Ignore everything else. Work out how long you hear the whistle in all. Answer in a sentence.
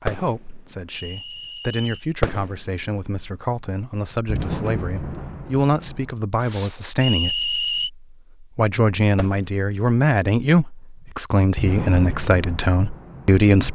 You can hear the whistle for 2 seconds altogether.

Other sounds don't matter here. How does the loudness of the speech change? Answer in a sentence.
The volume of the speech goes up.